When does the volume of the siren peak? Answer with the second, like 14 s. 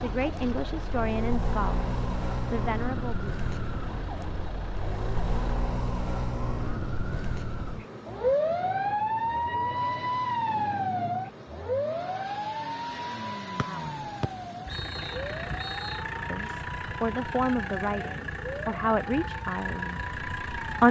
9 s.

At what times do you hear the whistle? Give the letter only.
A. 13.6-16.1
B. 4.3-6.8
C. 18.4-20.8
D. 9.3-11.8
A.